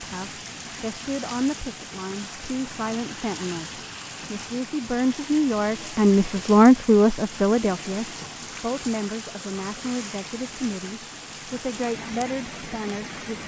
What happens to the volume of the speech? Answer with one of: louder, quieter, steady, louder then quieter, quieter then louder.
louder then quieter.